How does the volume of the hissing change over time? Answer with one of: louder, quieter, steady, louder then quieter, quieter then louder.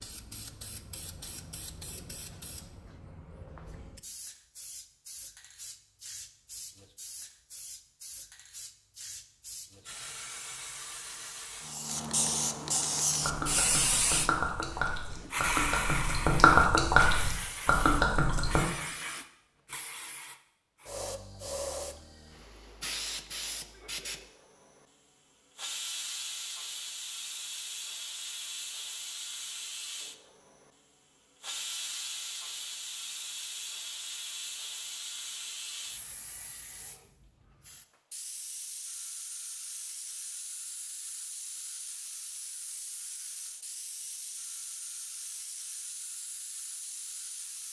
louder then quieter.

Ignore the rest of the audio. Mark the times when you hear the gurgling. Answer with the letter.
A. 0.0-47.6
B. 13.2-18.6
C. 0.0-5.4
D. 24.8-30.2
B.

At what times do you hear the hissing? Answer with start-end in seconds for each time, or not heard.
0.0-47.6.